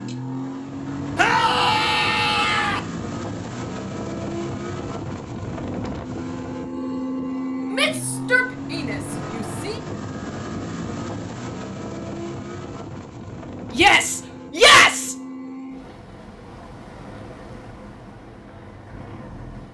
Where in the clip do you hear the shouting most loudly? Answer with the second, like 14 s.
15 s.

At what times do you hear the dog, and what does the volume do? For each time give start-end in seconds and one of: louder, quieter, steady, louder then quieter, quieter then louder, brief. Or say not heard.
not heard.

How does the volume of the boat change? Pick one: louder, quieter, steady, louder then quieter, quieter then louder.
quieter.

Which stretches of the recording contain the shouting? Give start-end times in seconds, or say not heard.
1.1-2.8, 7.7-9.8, 13.7-15.2.